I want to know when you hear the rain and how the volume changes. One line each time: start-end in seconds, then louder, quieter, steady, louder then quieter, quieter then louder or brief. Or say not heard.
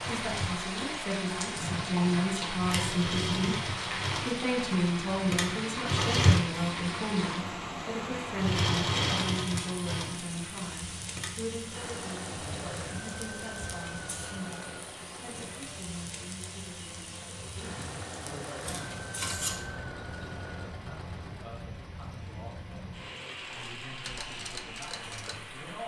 0.0-25.8 quieter.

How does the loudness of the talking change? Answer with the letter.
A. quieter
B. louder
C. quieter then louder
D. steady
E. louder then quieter
A.